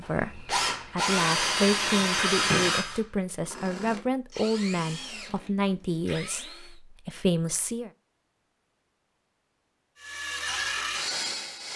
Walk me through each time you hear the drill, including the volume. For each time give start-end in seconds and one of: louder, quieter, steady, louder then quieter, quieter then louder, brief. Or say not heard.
0.0-6.8 quieter
10.0-11.7 brief.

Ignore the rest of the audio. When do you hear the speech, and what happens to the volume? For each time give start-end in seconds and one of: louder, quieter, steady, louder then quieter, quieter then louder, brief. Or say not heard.
0.0-7.9 steady.